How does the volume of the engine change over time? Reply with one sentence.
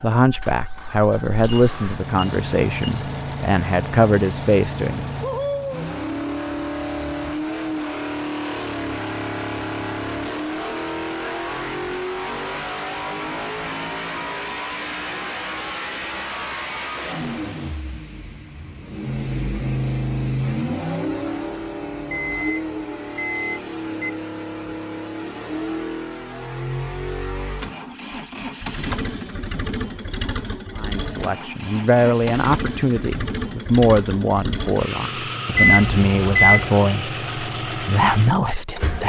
The volume of the engine stays about the same.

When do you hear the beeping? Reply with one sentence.
The beeping can be heard from 1.4 to 3.1 s, from 22.1 to 24.1 s and from 35.5 to 36.7 s.